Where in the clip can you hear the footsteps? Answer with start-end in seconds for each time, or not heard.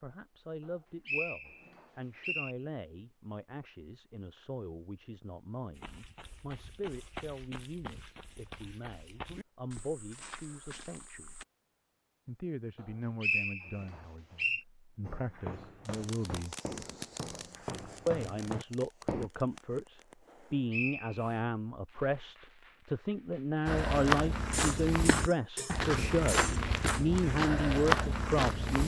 5.8-11.4, 15.0-19.3, 23.6-28.8.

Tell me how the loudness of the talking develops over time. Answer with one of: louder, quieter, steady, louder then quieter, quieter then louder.
louder.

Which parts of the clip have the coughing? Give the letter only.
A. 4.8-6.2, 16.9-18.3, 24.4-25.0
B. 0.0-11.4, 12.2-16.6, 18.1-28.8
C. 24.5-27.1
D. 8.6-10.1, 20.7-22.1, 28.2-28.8
C.